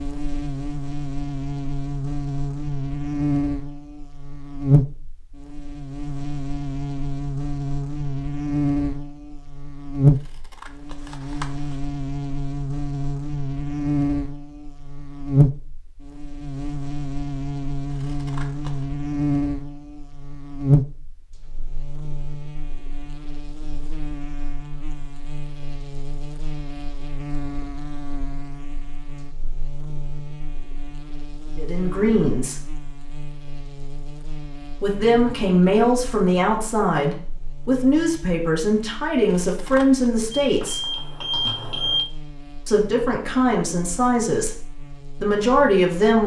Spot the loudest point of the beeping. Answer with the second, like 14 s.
42 s.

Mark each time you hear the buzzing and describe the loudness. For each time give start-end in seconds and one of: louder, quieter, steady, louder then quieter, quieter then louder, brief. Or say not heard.
0.0-46.2 quieter.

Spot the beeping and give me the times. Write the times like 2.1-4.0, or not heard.
40.4-42.0.